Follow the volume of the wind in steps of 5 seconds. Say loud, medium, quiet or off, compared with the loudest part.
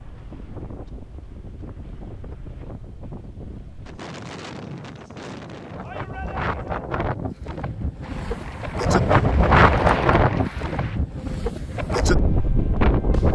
quiet, loud, loud.